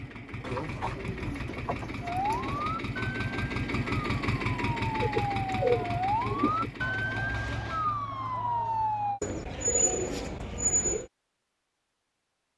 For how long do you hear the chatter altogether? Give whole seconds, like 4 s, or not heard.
not heard.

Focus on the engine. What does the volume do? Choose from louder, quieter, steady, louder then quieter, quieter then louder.
louder then quieter.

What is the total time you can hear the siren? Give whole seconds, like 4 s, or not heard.
7 s.